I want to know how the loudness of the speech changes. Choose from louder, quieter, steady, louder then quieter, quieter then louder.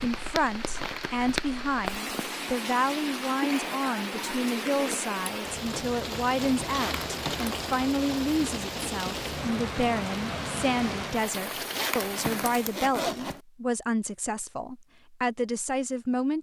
steady.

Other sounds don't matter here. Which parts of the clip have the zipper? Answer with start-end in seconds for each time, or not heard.
0.8-1.4, 6.8-7.6, 11.7-13.4.